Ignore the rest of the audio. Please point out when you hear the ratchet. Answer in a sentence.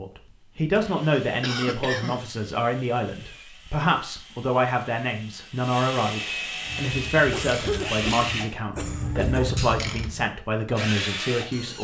You can hear the ratchet from 6.7 to 10.2 s.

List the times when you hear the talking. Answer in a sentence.
The talking can be heard from 0.0 to 11.7 s.